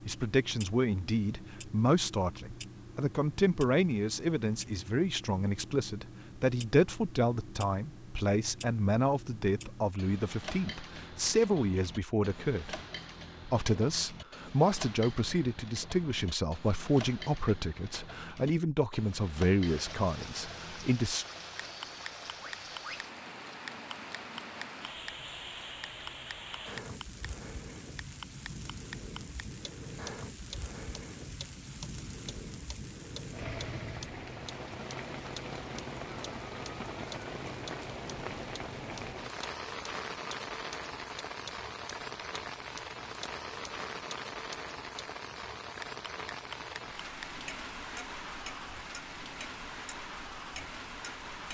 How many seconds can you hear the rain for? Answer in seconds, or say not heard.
32 s.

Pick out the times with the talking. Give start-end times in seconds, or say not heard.
0.1-12.8, 13.4-21.2.